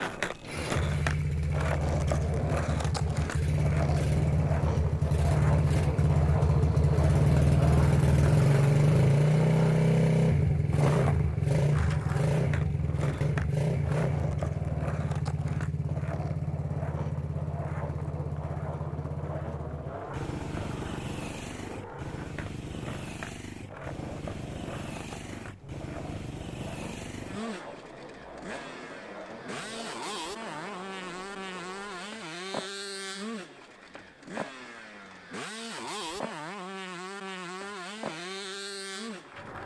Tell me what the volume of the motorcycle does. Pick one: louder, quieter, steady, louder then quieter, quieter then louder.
quieter.